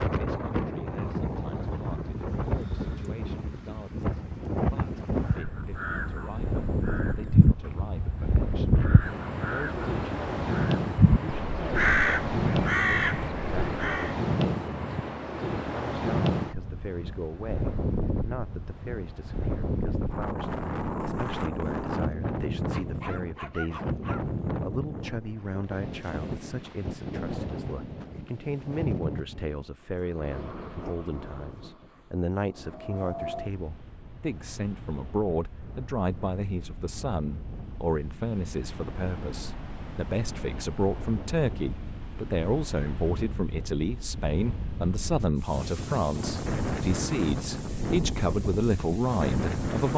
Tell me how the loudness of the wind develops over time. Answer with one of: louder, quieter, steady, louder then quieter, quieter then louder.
quieter then louder.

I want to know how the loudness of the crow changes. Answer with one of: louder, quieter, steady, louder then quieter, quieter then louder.
louder.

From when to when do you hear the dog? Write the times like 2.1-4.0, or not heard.
22.7-24.2.